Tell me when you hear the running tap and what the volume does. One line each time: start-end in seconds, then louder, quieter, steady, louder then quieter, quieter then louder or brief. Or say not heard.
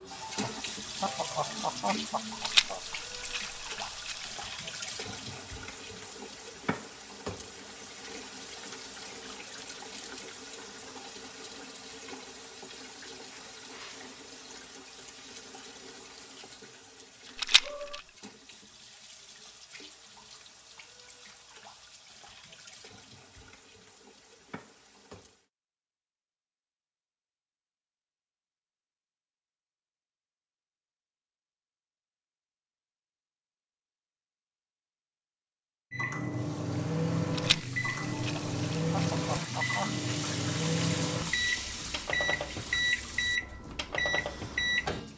0.0-25.5 quieter
36.2-45.1 louder then quieter.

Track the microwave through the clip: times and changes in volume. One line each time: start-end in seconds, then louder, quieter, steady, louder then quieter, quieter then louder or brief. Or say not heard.
35.9-45.1 steady.